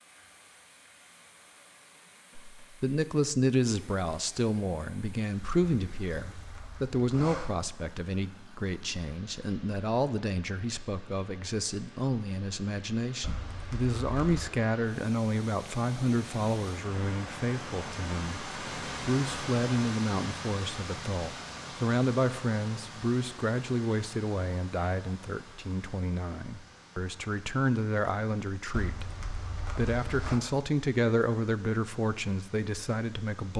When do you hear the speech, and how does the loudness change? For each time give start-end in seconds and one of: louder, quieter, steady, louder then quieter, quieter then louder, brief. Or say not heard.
2.6-33.5 steady.